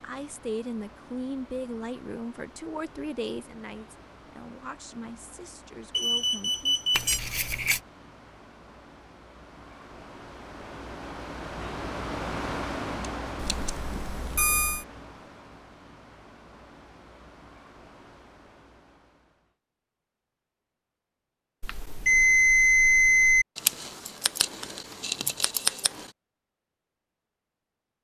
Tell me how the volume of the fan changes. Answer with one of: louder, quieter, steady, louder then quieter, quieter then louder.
louder then quieter.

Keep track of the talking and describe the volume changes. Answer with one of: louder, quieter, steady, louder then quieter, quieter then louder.
quieter.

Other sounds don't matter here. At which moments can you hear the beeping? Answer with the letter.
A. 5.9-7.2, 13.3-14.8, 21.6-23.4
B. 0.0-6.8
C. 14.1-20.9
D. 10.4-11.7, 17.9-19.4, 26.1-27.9
A.